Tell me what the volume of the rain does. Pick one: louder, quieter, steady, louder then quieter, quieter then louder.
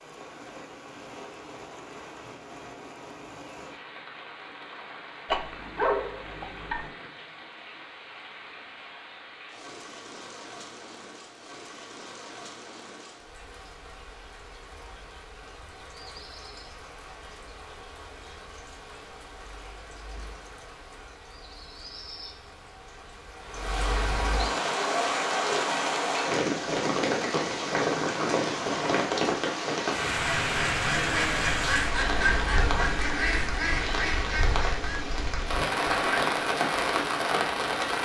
louder.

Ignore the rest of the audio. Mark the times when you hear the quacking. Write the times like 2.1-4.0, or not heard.
30.4-36.4.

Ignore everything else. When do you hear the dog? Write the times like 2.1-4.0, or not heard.
5.2-6.9.